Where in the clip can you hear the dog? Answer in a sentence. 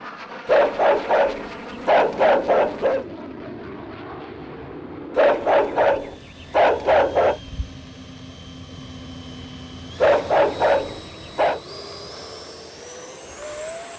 You can hear the dog from 0.5 to 3.0 s, from 5.2 to 7.4 s and from 10.0 to 11.6 s.